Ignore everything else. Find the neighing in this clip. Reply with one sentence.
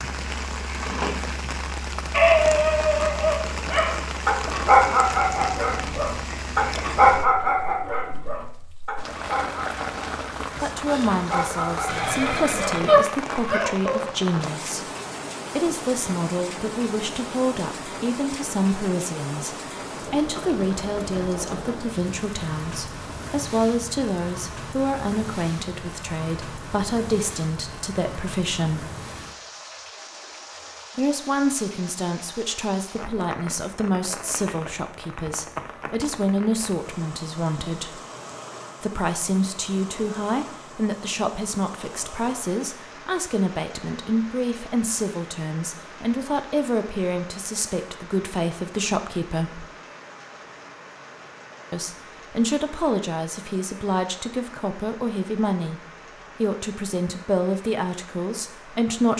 The neighing can be heard from 11.8 to 13.6 s.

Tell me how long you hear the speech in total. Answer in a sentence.
You can hear the speech for 42 seconds altogether.